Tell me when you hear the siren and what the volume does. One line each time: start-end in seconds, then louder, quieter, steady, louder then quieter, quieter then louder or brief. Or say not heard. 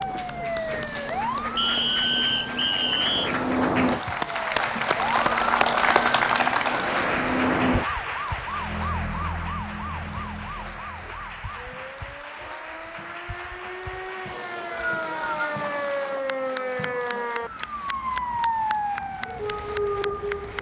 0.0-20.5 quieter then louder.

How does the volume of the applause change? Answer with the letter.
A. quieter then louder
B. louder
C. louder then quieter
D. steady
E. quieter
C.